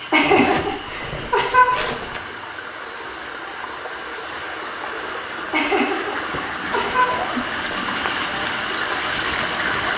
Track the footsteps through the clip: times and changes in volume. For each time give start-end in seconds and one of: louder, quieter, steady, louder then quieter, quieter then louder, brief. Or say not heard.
not heard.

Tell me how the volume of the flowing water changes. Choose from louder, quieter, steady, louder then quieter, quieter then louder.
louder.